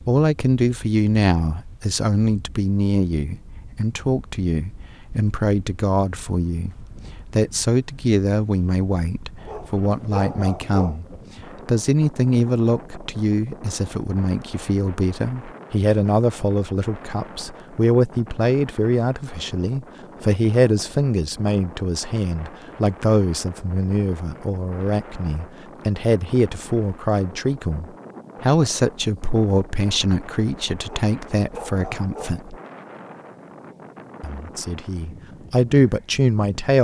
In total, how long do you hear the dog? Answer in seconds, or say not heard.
3 s.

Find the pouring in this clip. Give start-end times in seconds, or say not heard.
not heard.